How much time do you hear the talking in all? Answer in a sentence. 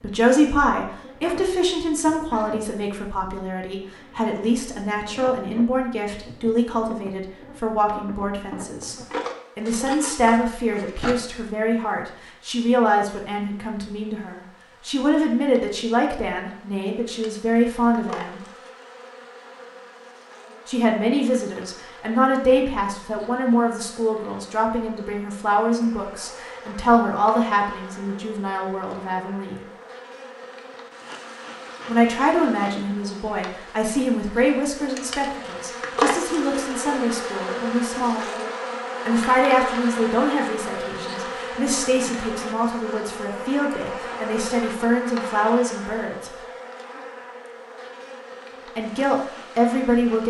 The talking can be heard for 42 seconds in total.